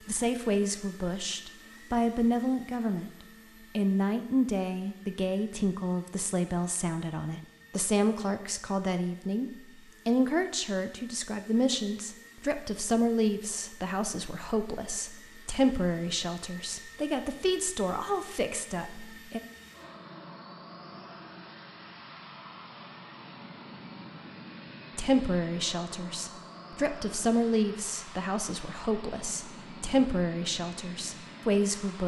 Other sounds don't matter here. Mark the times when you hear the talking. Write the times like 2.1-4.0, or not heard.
0.1-3.1, 3.8-19.4, 24.9-32.0.